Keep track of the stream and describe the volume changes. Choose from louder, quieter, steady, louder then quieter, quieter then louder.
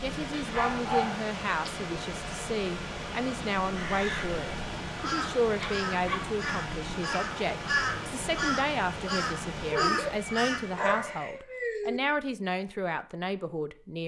steady.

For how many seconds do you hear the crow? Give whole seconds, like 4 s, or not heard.
7 s.